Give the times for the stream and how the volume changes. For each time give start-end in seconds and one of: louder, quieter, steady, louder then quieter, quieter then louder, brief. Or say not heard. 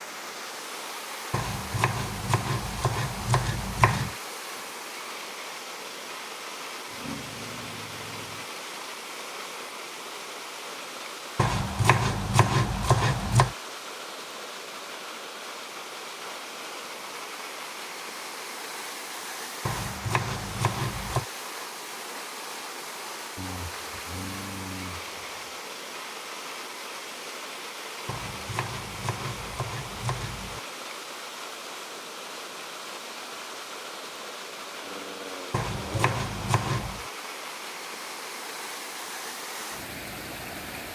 0.0-40.9 steady.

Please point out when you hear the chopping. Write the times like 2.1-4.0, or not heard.
1.3-4.1, 11.3-13.6, 19.6-21.2, 28.1-30.6, 35.5-37.1.